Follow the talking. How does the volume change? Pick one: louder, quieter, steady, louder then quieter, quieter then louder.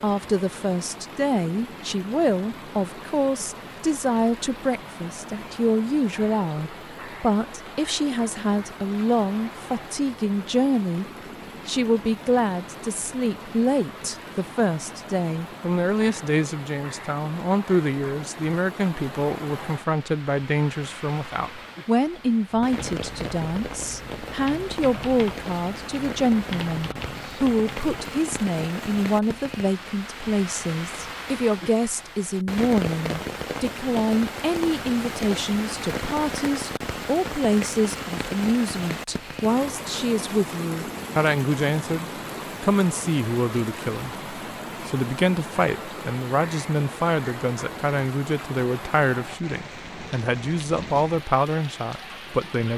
steady.